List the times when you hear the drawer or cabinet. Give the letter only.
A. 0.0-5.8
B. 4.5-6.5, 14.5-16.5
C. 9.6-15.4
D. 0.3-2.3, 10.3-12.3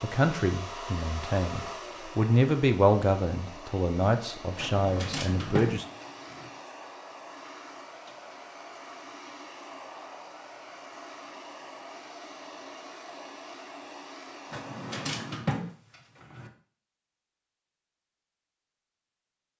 B.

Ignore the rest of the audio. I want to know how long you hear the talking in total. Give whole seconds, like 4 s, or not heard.
6 s.